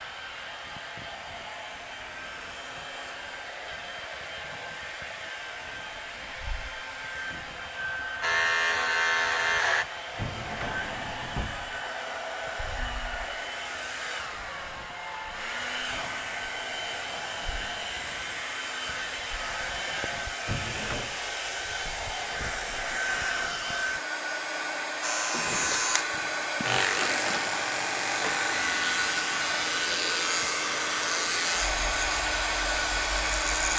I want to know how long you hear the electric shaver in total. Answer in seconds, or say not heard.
10 s.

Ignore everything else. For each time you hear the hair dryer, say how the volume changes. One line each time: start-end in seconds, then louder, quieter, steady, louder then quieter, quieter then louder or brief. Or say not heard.
0.0-33.7 louder.